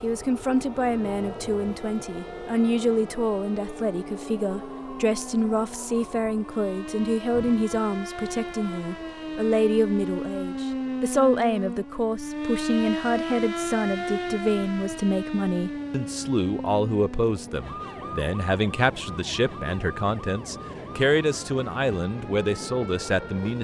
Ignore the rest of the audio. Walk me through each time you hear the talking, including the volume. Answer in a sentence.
The talking can be heard from 0.0 to 23.5 s, at a steady volume.